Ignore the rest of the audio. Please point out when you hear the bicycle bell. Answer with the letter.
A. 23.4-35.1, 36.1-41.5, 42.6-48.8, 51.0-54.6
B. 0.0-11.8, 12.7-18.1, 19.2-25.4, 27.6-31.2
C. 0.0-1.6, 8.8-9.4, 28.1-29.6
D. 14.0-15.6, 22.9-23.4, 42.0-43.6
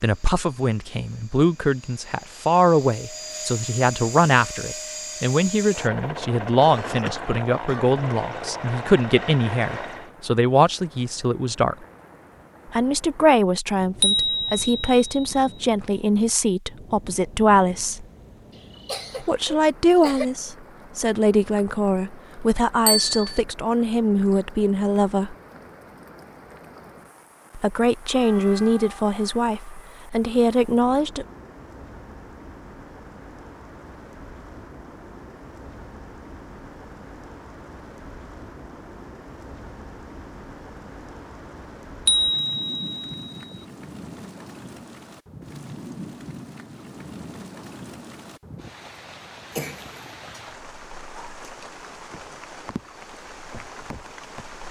D.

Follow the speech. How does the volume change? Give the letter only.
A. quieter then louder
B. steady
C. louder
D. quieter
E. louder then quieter
B.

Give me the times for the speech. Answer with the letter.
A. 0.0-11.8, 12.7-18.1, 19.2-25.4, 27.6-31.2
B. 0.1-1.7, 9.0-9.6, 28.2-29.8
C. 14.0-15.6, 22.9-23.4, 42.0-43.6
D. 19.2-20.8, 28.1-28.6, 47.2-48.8
A.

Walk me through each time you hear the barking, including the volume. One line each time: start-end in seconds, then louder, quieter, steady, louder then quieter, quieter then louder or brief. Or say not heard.
not heard.